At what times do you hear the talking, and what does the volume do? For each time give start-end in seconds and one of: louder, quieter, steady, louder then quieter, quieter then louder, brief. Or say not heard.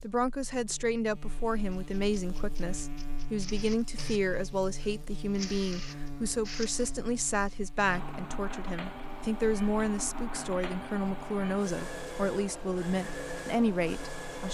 0.0-14.5 steady.